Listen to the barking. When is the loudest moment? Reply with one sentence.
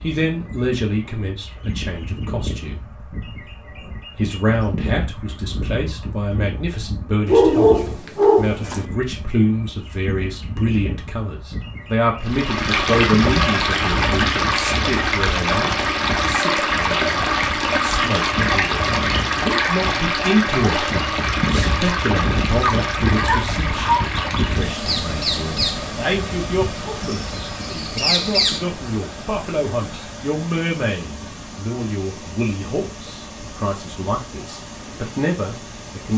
The loudest moment of the barking is at 8 seconds.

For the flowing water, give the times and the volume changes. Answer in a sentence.
You can hear the flowing water from 12.2 to 36.1 s, getting quieter.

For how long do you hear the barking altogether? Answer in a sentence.
The barking can be heard for 3 seconds in total.